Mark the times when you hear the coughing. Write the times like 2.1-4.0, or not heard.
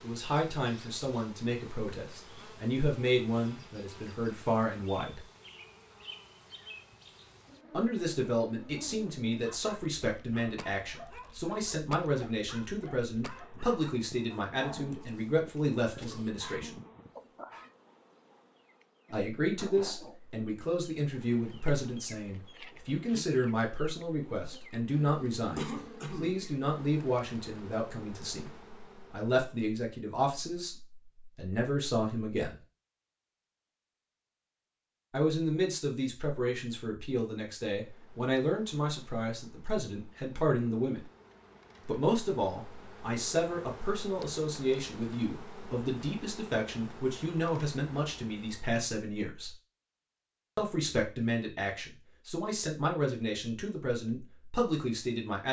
25.6-26.4.